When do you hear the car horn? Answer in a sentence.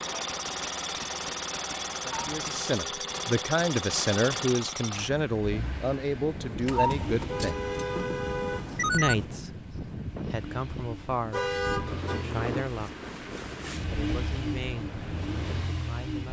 The car horn can be heard from 2.0 to 3.2 s, from 6.7 to 9.2 s and from 11.3 to 12.2 s.